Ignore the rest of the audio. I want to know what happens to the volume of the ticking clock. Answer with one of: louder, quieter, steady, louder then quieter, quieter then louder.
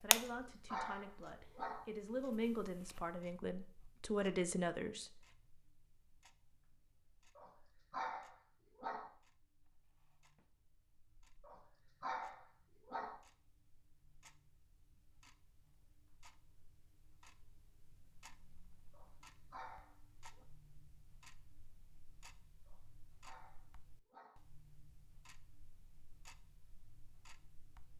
quieter then louder.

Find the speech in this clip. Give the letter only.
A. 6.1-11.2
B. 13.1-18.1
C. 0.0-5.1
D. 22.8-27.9
C.